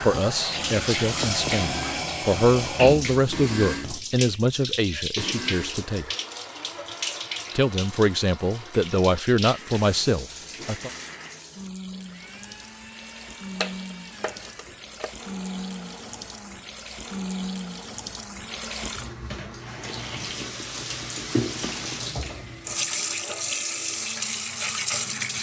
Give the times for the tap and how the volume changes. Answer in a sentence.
The tap can be heard from 0.0 to 25.3 s, getting quieter then louder.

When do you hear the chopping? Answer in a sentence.
The chopping can be heard from 13.6 to 15.2 s.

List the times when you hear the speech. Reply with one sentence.
You can hear the speech from 0.0 to 6.0 s and from 7.5 to 10.9 s.